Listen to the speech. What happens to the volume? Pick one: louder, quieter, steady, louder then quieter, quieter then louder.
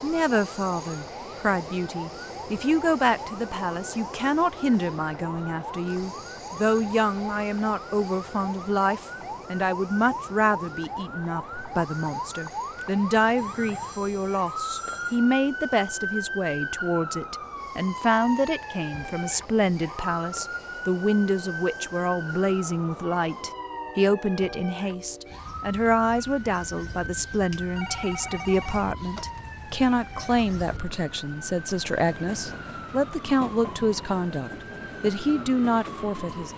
steady.